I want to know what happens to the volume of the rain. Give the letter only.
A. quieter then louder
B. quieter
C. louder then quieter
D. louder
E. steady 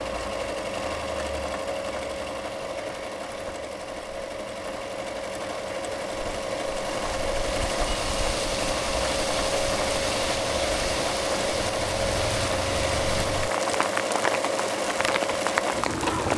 D.